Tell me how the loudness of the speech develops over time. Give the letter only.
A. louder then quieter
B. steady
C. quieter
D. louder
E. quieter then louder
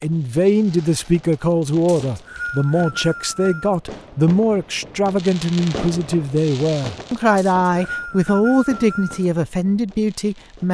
B.